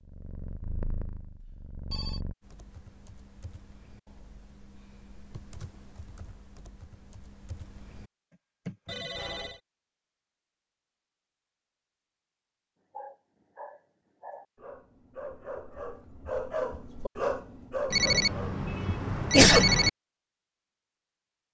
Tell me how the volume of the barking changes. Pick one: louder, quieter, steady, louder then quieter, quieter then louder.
louder.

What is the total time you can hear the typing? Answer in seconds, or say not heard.
7 s.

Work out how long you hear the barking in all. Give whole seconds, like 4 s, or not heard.
6 s.